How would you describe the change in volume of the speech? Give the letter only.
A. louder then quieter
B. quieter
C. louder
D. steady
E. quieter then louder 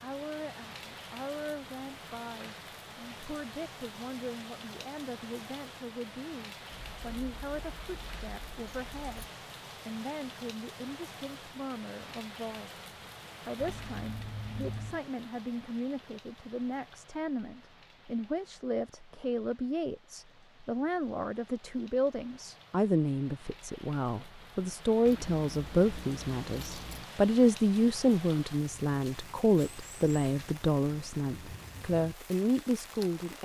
C.